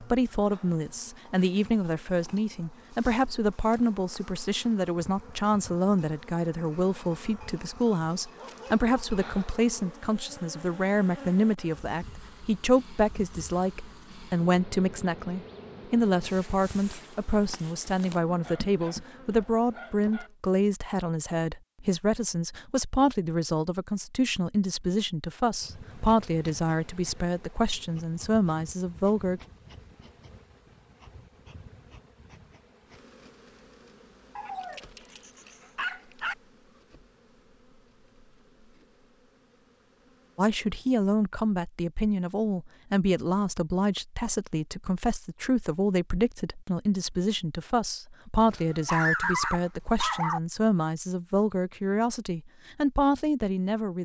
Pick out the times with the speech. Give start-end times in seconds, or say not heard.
0.0-29.4, 40.4-54.0.